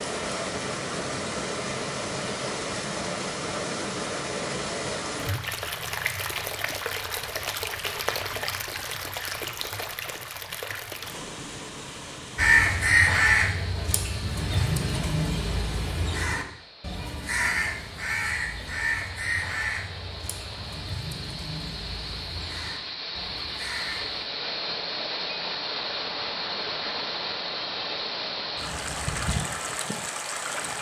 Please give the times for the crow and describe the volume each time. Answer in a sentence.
You can hear the crow from 12.3 to 24.2 s, getting quieter.